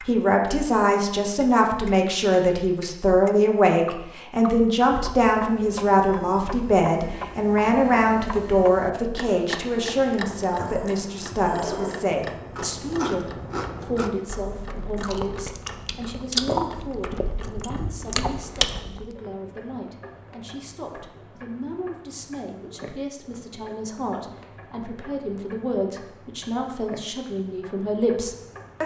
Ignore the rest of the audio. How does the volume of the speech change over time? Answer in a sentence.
The loudness of the speech goes down, then up.